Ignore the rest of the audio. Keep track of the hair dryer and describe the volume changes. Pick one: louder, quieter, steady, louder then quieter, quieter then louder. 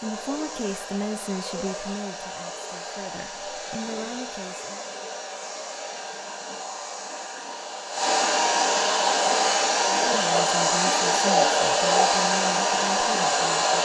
louder.